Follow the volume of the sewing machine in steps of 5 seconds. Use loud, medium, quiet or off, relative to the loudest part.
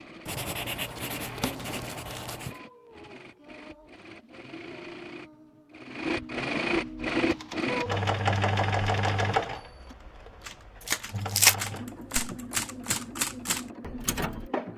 quiet, loud, medium.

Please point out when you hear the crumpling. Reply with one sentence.
The crumpling can be heard from 0.9 to 2.4 s and from 10.8 to 11.6 s.